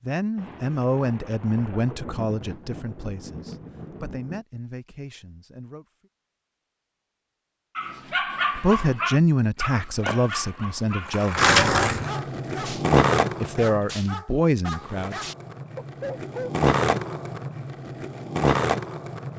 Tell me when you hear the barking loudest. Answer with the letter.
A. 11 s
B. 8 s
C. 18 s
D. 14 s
B.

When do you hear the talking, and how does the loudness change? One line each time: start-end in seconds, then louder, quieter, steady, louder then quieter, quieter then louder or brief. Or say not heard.
0.0-5.8 quieter
8.6-11.5 brief
13.4-15.2 brief.